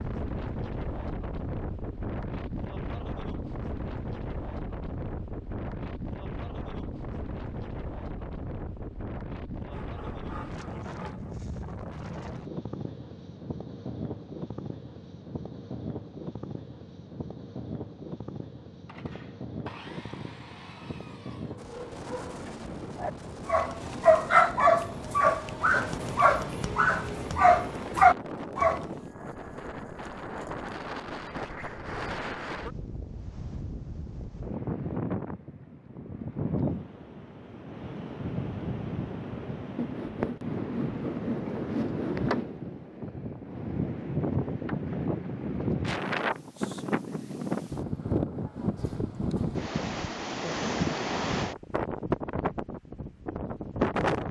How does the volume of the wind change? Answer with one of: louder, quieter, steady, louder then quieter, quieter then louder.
louder.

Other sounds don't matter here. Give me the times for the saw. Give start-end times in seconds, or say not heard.
9.7-11.3, 18.9-21.6, 39.8-42.5.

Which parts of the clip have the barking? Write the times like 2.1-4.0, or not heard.
21.4-28.9.